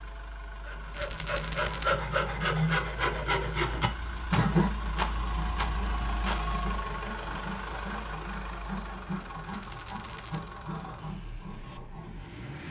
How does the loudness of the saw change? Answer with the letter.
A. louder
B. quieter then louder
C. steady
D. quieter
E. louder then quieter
D.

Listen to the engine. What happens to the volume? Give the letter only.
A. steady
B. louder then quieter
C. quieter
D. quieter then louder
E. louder
B.